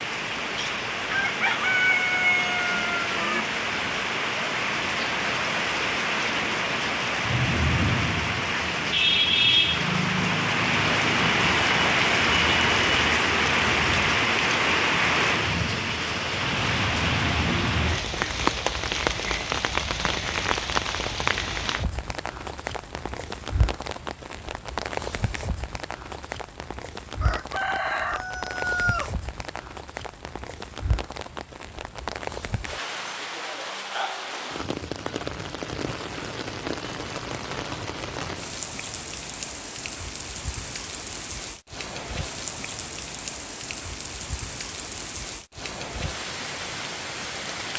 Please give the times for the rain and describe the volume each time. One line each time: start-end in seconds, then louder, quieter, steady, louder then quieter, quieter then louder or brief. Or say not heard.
0.0-47.7 quieter.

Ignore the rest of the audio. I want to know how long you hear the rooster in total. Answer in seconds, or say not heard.
5 s.